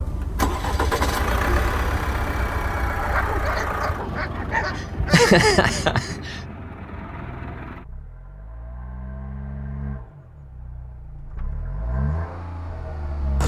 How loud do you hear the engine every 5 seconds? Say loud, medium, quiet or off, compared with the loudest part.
loud, medium, medium.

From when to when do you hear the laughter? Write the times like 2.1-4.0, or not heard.
4.8-6.4.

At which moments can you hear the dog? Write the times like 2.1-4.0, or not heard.
3.0-5.3.